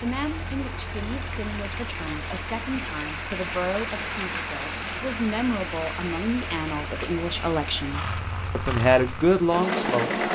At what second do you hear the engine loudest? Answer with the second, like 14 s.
10 s.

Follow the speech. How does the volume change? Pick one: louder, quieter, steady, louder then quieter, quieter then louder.
louder.